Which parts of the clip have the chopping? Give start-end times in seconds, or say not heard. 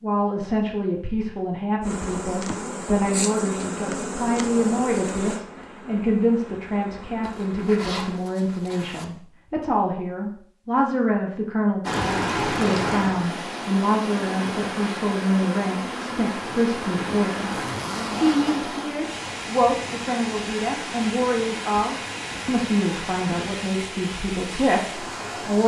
not heard.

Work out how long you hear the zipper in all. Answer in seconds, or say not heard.
3 s.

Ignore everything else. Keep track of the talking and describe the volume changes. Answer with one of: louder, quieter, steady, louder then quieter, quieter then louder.
steady.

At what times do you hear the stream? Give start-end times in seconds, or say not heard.
11.8-25.6.